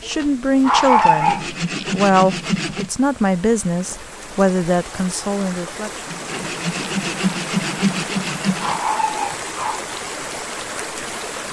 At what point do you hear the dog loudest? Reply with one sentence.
The volume of the dog peaks at 1 second.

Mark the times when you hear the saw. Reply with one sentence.
You can hear the saw from 1.1 to 2.9 s and from 6.0 to 8.8 s.